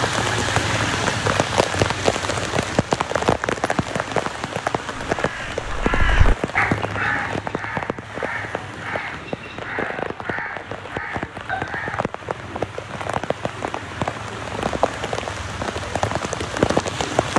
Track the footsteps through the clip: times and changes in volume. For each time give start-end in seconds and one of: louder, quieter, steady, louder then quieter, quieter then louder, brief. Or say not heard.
not heard.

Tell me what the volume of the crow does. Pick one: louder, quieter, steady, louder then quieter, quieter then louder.
quieter.